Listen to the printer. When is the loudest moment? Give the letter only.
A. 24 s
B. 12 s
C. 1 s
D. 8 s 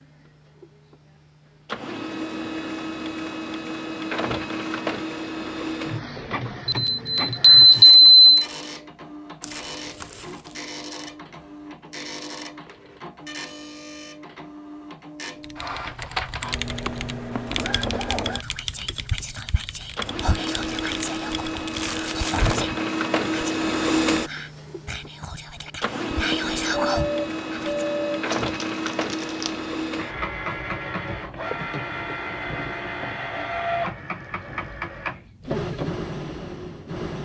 A.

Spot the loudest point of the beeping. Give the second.
8 s.